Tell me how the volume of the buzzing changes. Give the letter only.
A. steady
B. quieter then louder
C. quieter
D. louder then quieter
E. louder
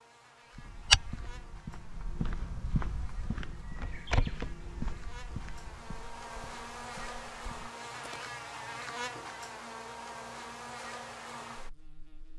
E.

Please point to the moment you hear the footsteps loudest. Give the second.
1 s.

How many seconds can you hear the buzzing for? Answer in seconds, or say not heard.
12 s.